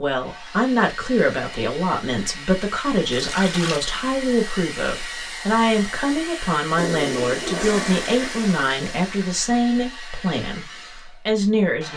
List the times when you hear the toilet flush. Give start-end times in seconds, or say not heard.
3.1-3.8, 6.8-9.4.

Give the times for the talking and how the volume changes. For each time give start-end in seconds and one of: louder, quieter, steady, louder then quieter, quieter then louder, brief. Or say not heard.
0.0-10.7 steady
11.2-11.9 brief.